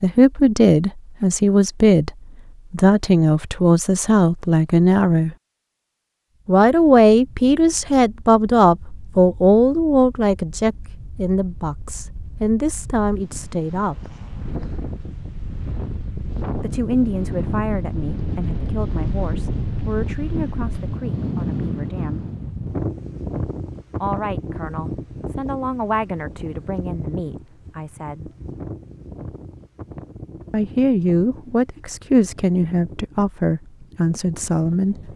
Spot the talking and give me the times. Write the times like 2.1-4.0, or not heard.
0.0-2.1, 2.7-5.3, 6.5-14.2, 16.6-22.3, 23.9-28.2, 30.5-35.0.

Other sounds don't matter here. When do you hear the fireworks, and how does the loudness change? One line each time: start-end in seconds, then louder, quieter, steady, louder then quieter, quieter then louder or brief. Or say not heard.
not heard.